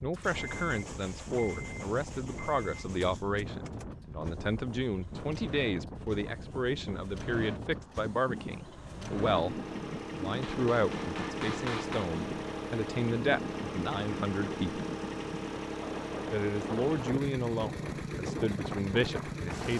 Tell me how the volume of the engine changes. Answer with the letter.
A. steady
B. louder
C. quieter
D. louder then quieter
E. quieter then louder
B.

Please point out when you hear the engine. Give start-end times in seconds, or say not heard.
0.0-19.7.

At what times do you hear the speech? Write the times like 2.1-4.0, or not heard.
0.0-14.8, 16.3-19.7.